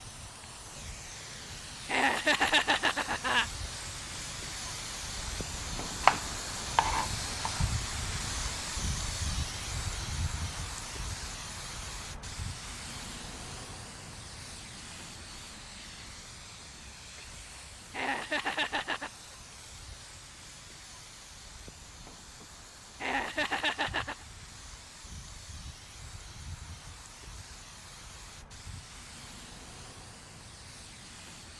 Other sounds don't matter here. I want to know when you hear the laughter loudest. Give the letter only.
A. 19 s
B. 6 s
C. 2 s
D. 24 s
C.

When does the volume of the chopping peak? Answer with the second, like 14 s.
6 s.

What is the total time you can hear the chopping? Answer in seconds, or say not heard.
2 s.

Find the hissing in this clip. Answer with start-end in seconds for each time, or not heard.
0.0-31.5.